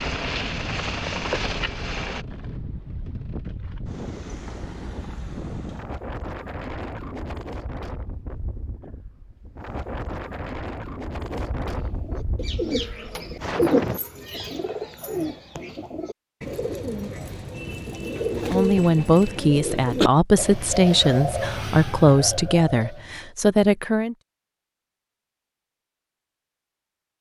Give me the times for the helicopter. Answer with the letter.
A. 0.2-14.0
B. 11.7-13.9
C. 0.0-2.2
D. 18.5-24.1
C.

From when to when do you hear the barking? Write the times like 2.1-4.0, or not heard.
not heard.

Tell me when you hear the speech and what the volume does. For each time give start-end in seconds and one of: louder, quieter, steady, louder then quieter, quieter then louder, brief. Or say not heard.
18.5-24.1 steady.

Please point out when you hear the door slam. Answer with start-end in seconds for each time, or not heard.
not heard.